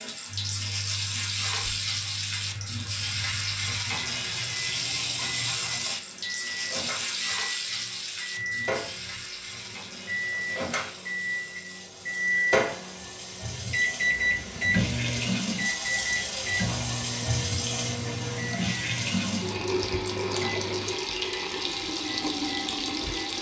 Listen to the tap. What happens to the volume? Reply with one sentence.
The volume of the tap goes down, then up.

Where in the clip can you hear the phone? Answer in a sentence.
You can't hear the phone here.